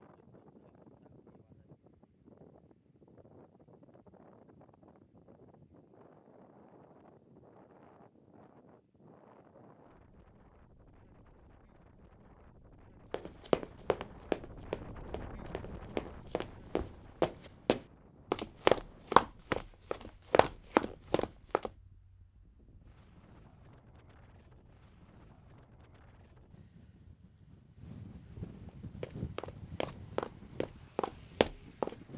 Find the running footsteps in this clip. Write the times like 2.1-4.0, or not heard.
13.1-21.7, 28.6-31.9.